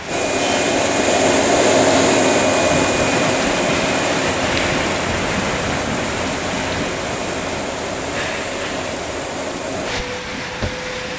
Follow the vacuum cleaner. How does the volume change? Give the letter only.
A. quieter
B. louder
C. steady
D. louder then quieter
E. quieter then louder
A.